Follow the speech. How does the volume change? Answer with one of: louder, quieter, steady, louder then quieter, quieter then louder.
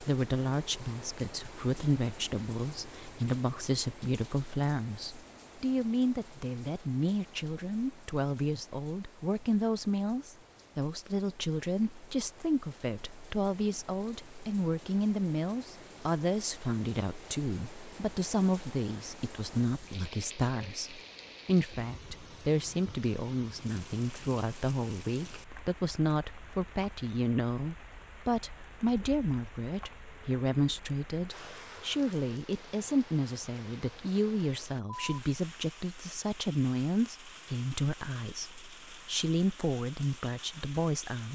steady.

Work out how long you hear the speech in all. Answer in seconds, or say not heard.
41 s.